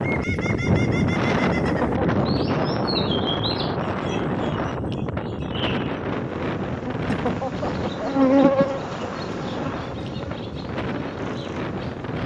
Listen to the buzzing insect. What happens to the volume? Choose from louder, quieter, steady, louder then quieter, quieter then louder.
louder then quieter.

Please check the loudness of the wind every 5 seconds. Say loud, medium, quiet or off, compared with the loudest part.
loud, medium, medium.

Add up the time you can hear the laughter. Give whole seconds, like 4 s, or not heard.
2 s.